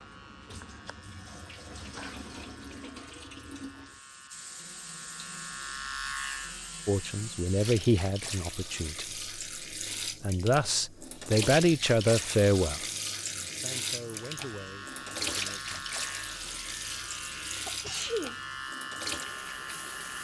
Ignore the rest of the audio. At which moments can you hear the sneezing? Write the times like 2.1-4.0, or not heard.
17.6-18.4.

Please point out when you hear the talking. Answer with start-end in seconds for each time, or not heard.
6.8-9.2, 10.2-15.8.